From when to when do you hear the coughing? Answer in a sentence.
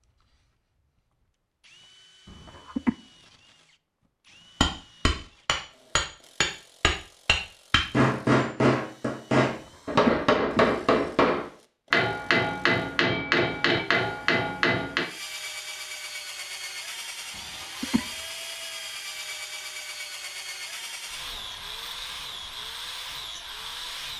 You can hear the coughing from 2.2 to 3.0 s, from 9.8 to 10.7 s and from 17.4 to 18.1 s.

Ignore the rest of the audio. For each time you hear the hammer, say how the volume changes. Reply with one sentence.
You can hear the hammer from 4.6 to 15.1 s, at a steady volume.